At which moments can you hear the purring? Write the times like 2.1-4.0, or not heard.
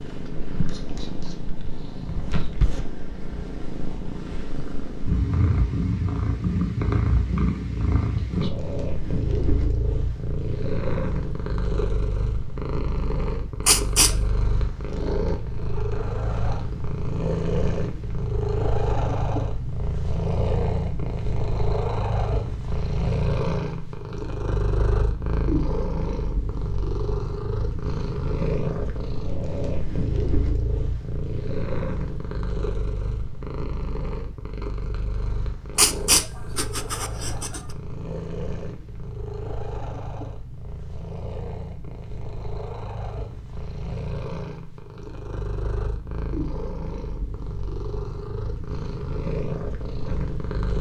0.0-50.7.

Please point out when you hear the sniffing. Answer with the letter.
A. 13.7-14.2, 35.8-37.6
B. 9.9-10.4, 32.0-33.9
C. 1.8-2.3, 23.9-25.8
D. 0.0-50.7
A.